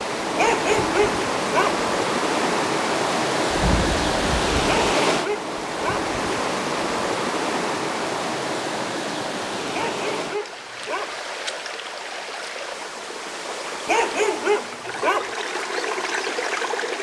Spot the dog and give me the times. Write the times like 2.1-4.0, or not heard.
0.3-1.9, 4.7-6.1, 9.7-11.2, 13.8-15.3.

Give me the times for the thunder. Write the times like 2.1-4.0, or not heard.
3.5-4.8.